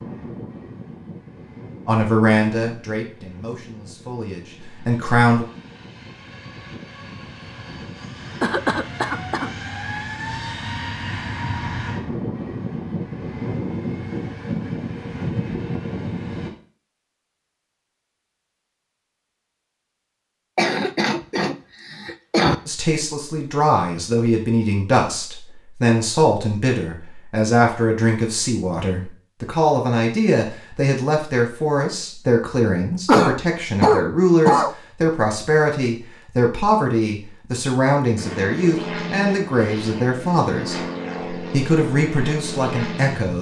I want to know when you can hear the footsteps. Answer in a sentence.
The footsteps can't be heard in this clip.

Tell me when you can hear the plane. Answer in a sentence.
You can hear the plane from 0.0 to 16.5 s and from 38.1 to 43.3 s.